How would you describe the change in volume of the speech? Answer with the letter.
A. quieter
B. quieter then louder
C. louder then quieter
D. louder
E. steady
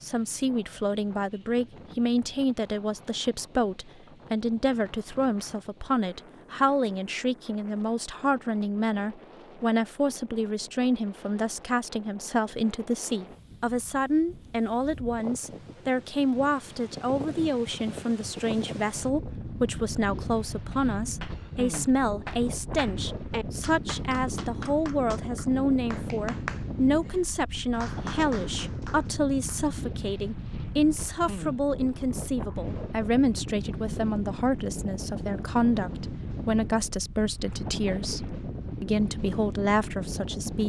E.